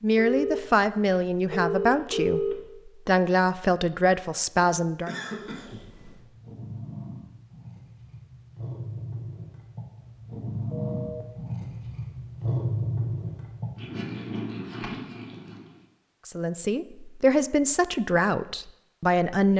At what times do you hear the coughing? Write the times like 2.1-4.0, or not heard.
4.6-5.8.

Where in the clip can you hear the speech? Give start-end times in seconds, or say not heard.
0.0-5.1, 16.2-19.5.